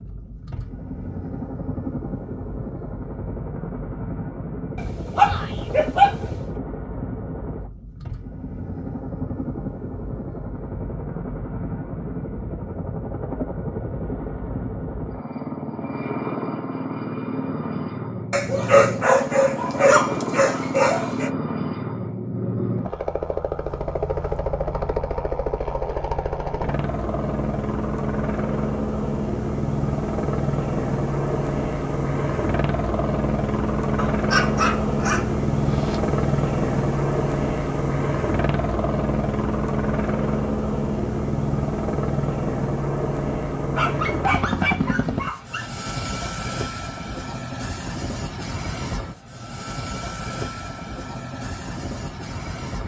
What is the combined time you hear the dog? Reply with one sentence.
The dog can be heard for 9 seconds in total.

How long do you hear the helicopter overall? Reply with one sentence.
The helicopter can be heard for 53 seconds in total.